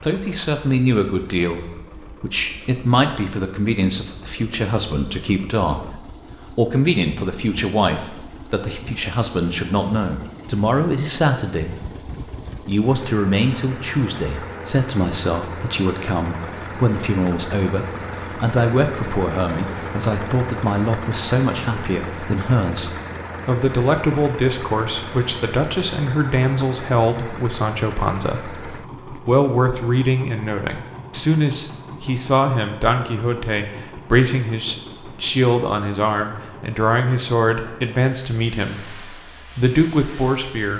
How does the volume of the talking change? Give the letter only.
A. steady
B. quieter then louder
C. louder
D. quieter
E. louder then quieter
A.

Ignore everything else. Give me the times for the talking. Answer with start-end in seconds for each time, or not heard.
0.0-11.9, 12.7-40.7.